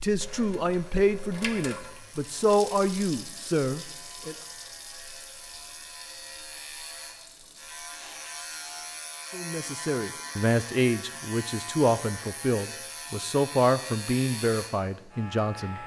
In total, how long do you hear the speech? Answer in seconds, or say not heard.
11 s.